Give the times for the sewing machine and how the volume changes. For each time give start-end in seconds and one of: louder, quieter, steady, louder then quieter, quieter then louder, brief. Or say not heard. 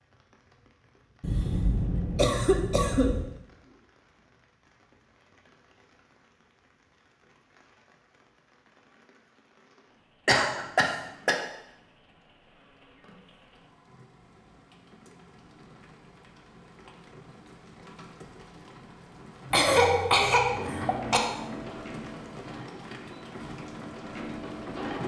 20.4-25.0 quieter then louder.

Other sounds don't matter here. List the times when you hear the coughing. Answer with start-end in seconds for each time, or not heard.
1.2-3.2, 10.2-11.4, 19.5-21.2.